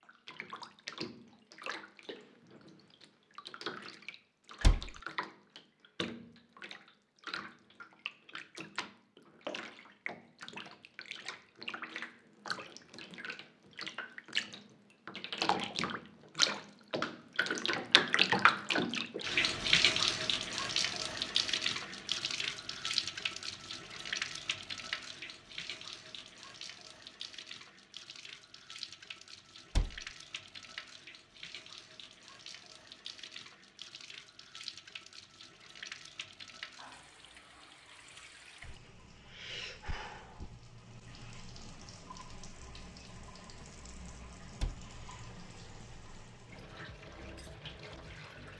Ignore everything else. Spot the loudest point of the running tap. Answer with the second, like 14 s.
18 s.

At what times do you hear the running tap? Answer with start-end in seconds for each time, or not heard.
0.0-48.5.